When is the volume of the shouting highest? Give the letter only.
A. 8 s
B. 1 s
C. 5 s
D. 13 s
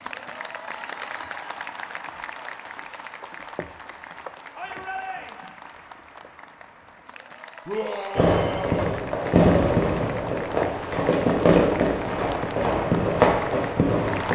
A.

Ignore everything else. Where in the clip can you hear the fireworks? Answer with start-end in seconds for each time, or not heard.
8.2-14.3.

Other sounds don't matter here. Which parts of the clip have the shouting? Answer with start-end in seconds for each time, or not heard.
4.5-5.5, 7.7-8.9.